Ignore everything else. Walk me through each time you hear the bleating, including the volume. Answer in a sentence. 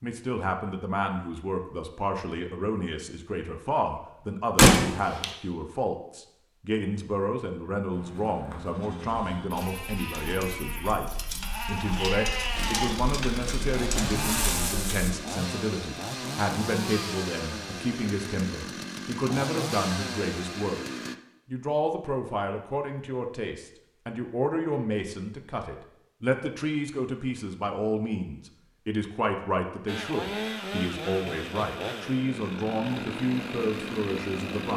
The bleating can be heard from 7.9 to 15.2 s, getting louder.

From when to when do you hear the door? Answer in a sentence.
You can hear the door from 4.5 to 5.2 s.